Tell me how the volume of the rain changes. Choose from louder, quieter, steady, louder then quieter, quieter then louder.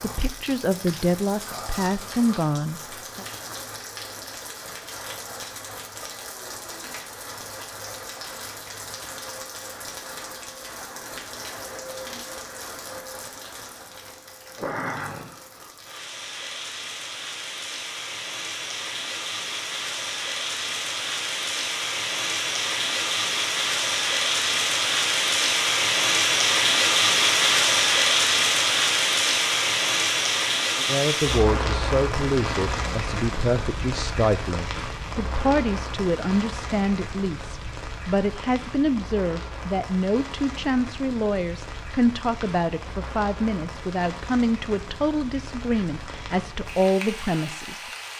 louder then quieter.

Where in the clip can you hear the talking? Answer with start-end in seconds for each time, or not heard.
0.0-3.2, 30.8-47.9.